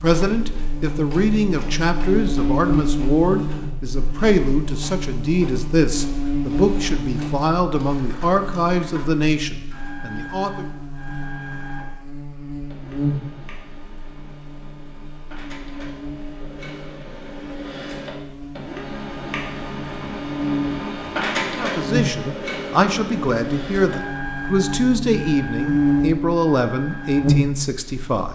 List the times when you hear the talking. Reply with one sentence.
You can hear the talking from 0.0 to 10.7 s and from 21.6 to 28.3 s.